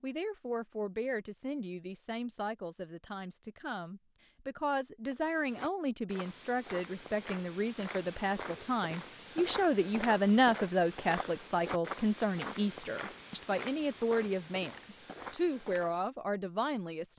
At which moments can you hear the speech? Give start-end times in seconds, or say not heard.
0.0-17.1.